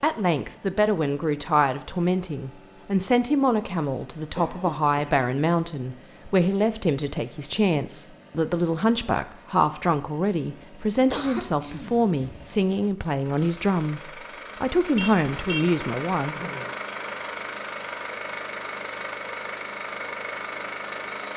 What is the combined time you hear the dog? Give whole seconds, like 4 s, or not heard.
not heard.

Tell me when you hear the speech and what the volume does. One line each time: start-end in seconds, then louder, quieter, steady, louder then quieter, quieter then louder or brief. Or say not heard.
0.0-16.4 steady.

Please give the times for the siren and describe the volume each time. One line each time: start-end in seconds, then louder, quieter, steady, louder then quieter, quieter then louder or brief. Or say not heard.
not heard.